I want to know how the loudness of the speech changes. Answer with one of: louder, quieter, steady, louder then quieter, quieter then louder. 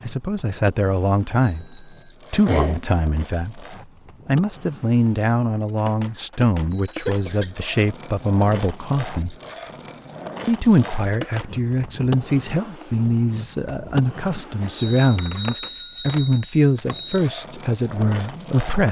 steady.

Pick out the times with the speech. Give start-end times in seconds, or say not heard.
0.0-9.3, 10.4-18.8.